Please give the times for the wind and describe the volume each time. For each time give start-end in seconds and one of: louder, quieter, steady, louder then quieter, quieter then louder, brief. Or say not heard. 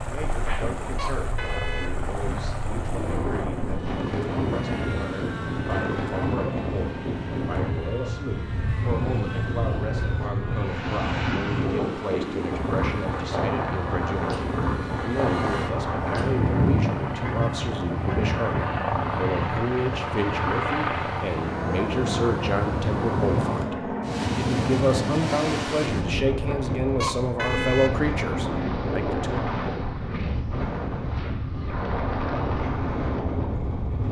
0.0-34.0 steady.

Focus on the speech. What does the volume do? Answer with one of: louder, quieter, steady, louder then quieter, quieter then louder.
louder.